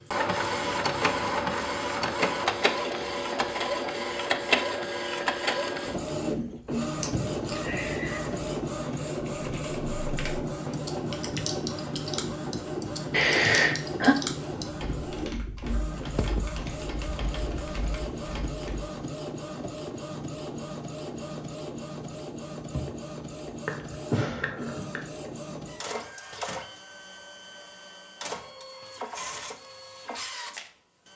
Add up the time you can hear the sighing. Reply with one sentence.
The sighing can be heard for 4 seconds in total.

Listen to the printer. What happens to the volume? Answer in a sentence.
The volume of the printer goes down.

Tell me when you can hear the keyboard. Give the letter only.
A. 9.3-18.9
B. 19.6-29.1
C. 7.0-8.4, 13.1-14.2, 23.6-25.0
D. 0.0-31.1
A.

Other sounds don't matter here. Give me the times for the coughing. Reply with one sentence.
You can't hear the coughing here.